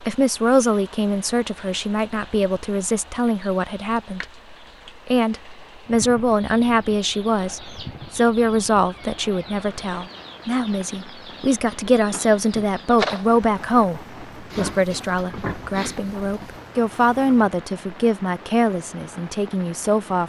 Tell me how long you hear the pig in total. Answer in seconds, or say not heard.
2 s.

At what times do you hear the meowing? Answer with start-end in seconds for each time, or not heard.
12.9-13.4.